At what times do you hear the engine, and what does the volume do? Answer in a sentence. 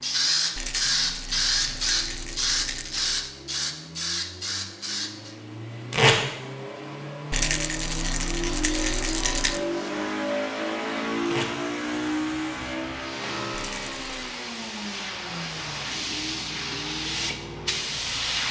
The engine can be heard from 0.0 to 18.3 s, getting louder then quieter.